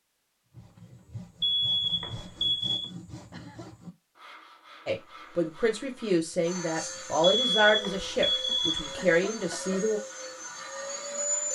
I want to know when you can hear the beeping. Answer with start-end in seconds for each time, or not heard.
1.4-2.9, 7.2-8.9.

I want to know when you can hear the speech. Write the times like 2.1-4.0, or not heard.
4.8-10.0.